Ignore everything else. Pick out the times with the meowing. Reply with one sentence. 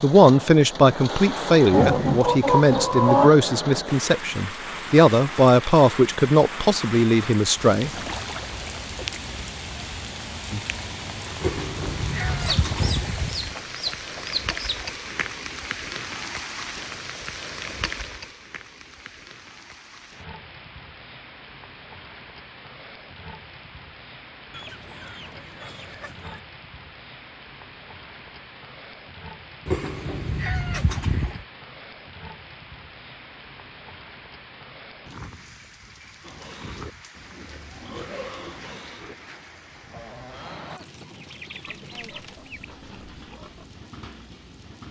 You can hear the meowing from 11.4 to 13.3 s and from 29.6 to 31.4 s.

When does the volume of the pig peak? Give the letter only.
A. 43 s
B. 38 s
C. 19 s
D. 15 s
B.